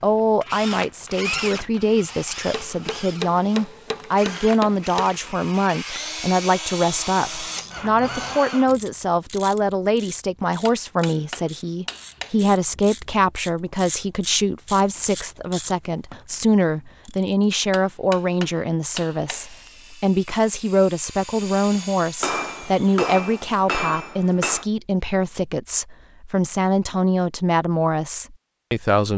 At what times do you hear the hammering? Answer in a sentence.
You can hear the hammering from 2.5 to 5.2 s, from 10.7 to 12.3 s, from 17.7 to 19.7 s and from 22.2 to 24.6 s.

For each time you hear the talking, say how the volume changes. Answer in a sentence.
The talking can be heard from 0.0 to 29.1 s, at a steady volume.